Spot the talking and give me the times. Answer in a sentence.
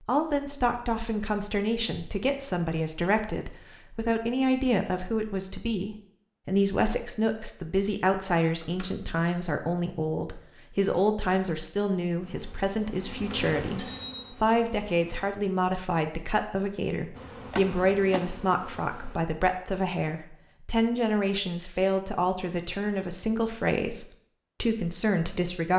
You can hear the talking from 0.1 to 25.7 s.